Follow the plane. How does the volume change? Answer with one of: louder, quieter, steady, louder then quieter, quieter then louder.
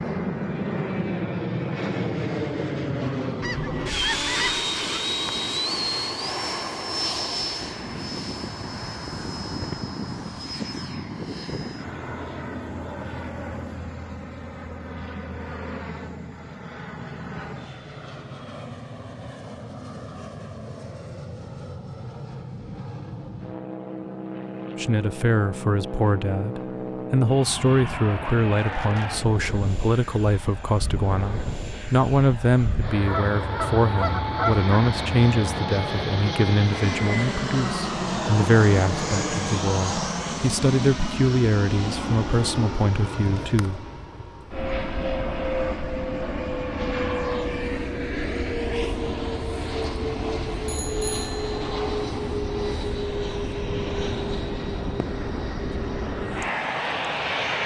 quieter then louder.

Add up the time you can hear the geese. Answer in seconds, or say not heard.
3 s.